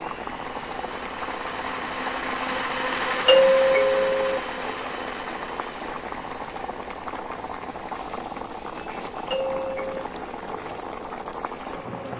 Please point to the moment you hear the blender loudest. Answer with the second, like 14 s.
3 s.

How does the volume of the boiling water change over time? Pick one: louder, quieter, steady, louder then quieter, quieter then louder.
steady.